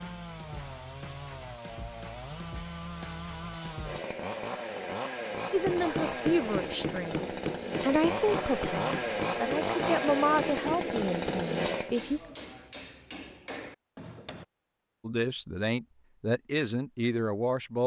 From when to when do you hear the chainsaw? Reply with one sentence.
The chainsaw can be heard from 0.0 to 11.9 s.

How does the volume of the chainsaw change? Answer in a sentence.
The volume of the chainsaw goes up.